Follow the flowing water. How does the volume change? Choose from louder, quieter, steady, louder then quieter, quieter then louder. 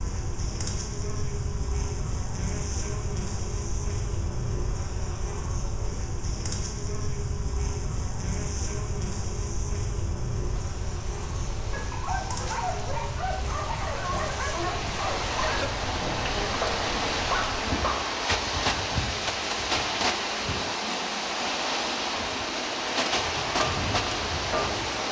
louder.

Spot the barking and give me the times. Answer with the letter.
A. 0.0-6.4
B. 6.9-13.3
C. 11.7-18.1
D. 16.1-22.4
C.